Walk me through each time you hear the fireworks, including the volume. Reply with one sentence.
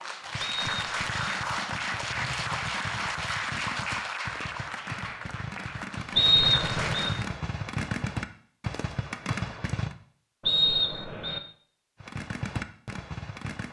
You can hear the fireworks from 0.2 to 9.9 s, getting louder; and briefly from 12.0 to 13.6 s.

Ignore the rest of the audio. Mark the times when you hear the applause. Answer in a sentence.
The applause can be heard from 0.0 to 7.3 s.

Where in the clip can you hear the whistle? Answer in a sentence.
The whistle can be heard from 0.4 to 1.2 s, from 6.2 to 7.1 s and from 10.4 to 11.4 s.